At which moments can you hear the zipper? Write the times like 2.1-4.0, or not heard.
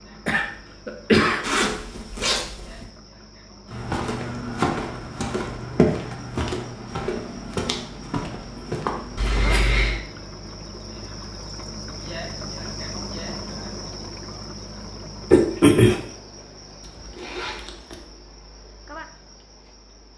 1.4-2.9, 9.2-10.0, 16.8-18.1.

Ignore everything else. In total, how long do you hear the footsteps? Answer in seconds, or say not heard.
6 s.